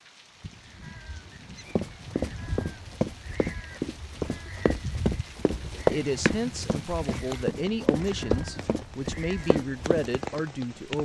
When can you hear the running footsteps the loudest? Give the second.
6 s.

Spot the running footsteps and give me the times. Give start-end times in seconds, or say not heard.
1.8-10.1.